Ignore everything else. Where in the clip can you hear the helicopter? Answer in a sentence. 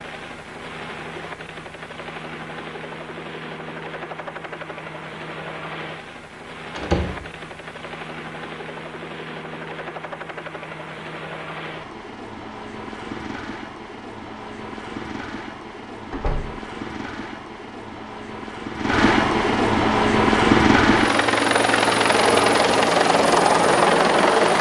You can hear the helicopter from 0.0 to 24.5 s.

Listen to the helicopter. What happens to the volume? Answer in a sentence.
The loudness of the helicopter goes up.